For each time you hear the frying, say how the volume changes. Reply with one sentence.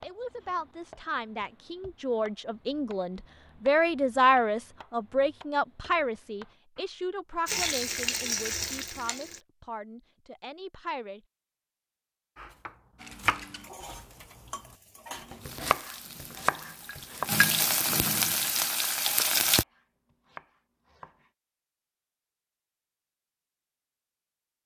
You can hear the frying briefly from 7.5 to 9.4 s; and from 12.9 to 19.6 s, getting louder.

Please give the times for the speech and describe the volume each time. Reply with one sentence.
You can hear the speech from 0.0 to 11.2 s, getting louder then quieter.